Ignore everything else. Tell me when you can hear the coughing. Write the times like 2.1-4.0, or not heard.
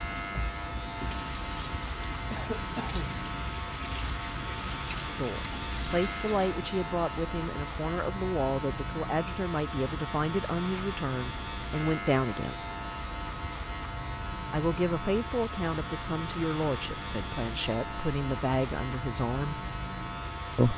2.3-3.2.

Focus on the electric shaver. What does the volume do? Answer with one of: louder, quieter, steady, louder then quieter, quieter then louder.
steady.